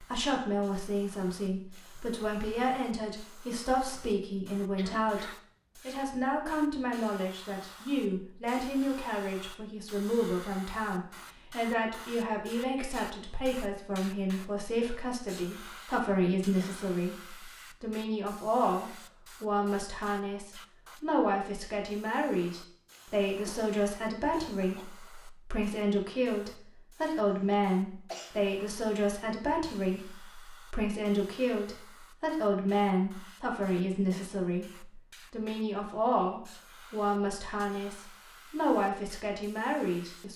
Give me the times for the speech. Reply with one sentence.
The speech can be heard from 0.0 to 40.3 s.